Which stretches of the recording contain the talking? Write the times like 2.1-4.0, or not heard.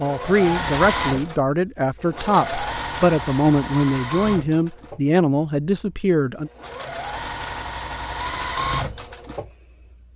0.0-6.5.